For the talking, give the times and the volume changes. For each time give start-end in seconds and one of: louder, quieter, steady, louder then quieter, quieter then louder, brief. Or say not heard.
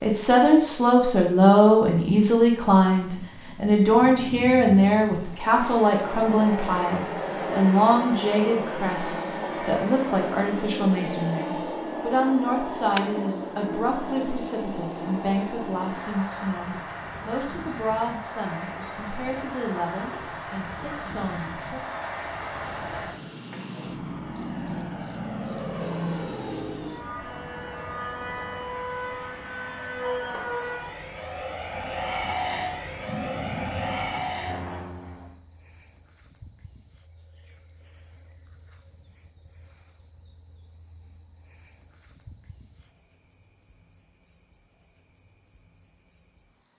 0.0-21.9 quieter.